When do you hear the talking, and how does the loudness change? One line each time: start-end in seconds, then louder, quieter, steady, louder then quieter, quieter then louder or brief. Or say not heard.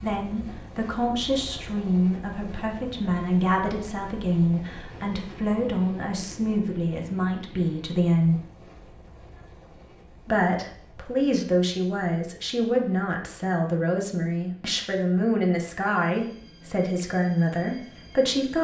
0.0-8.4 steady
10.2-18.5 steady.